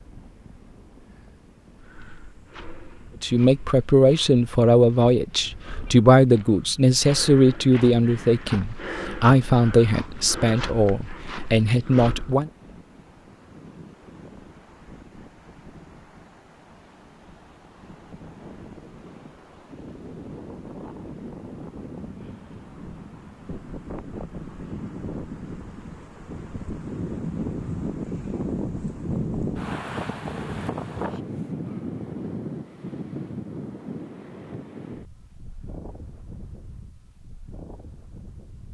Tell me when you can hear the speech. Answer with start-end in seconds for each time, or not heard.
3.2-12.5.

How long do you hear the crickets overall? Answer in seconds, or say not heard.
not heard.